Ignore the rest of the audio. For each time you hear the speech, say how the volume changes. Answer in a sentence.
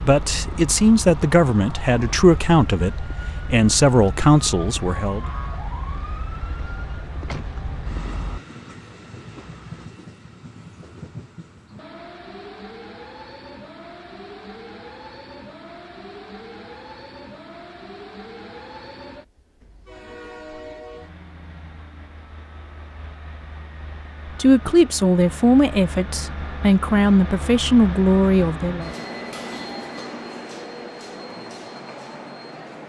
You can hear the speech from 0.0 to 5.2 s, at a steady volume; and from 24.4 to 28.9 s, at a steady volume.